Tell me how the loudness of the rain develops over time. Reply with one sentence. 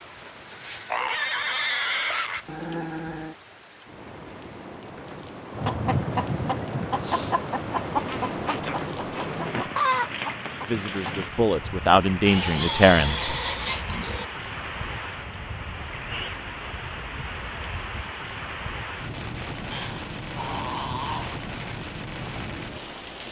The volume of the rain goes up.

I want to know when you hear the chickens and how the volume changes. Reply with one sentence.
You can hear the chickens from 5.5 to 11.2 s, at a steady volume.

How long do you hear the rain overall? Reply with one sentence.
You can hear the rain for 23 seconds altogether.